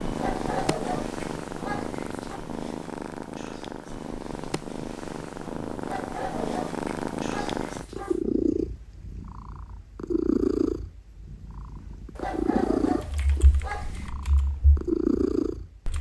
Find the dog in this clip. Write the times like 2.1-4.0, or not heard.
0.1-2.4, 5.8-8.2, 12.2-14.1.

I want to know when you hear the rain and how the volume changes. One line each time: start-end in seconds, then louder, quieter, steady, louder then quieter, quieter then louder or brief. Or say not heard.
not heard.